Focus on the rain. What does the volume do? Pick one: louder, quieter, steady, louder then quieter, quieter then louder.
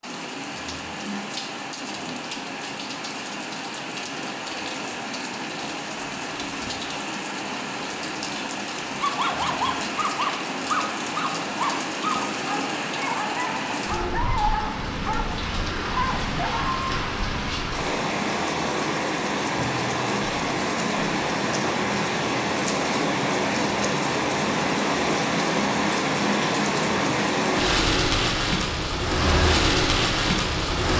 louder.